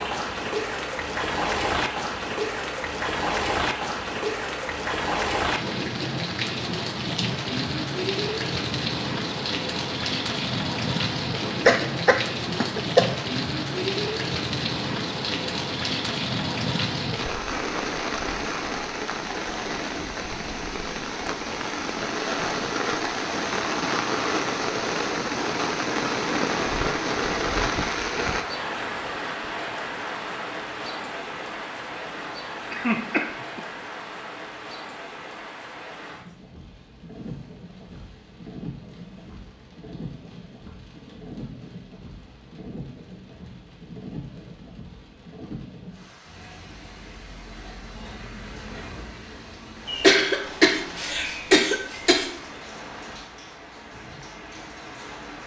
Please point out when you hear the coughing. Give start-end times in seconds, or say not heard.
11.7-13.1, 32.7-33.6, 49.9-52.3.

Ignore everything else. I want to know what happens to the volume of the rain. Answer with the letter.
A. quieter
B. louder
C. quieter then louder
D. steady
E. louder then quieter
A.